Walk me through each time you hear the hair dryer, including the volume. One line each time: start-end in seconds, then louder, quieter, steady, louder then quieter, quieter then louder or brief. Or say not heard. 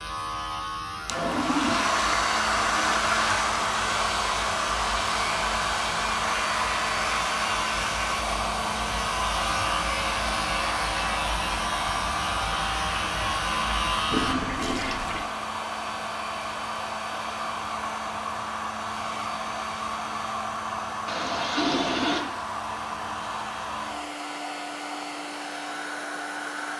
0.1-26.7 quieter.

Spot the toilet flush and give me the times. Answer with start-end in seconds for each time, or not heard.
1.1-3.5, 14.1-15.2, 21.1-22.2.